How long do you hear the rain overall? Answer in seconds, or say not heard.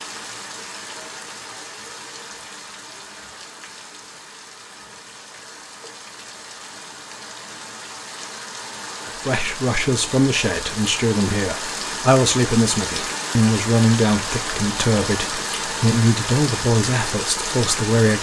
18 s.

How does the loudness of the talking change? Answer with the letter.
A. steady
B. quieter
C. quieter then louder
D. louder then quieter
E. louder
A.